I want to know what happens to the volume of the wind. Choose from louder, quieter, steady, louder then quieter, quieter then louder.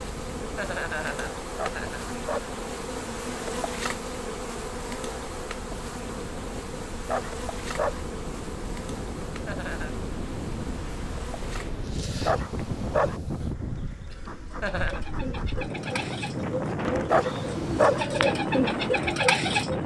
louder.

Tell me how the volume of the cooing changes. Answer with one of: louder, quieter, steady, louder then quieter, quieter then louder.
louder.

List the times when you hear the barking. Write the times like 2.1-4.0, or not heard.
1.6-2.5, 7.0-8.0, 12.2-13.2, 17.1-18.1.